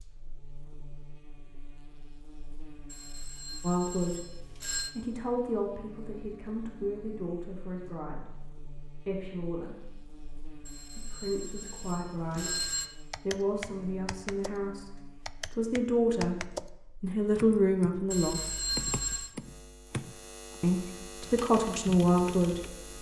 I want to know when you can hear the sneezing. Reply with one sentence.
The sneezing can't be heard in this clip.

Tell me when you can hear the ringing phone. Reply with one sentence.
You can hear the ringing phone from 2.9 to 5.0 s, from 10.7 to 12.9 s and from 18.1 to 19.4 s.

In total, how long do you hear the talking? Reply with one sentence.
The talking can be heard for 15 seconds in total.